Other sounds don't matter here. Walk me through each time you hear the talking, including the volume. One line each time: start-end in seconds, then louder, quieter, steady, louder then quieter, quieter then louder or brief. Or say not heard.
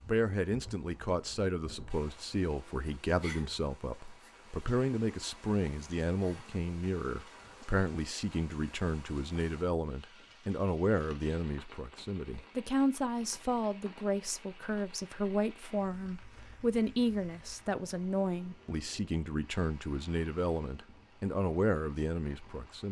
0.0-22.8 steady.